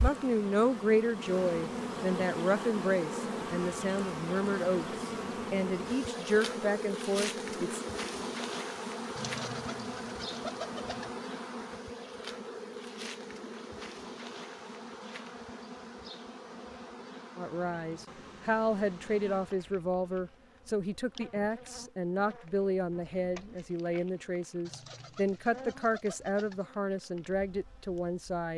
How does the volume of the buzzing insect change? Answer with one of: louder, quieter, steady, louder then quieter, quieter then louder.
quieter.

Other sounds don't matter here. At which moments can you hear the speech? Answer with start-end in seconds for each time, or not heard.
0.0-7.8, 17.4-28.5.